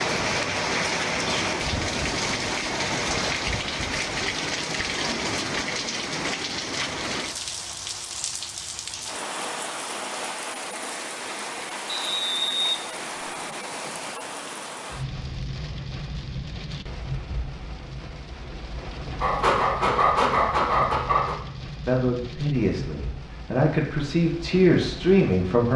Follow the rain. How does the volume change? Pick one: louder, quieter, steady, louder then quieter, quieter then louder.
quieter.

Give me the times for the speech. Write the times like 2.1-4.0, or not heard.
21.9-25.7.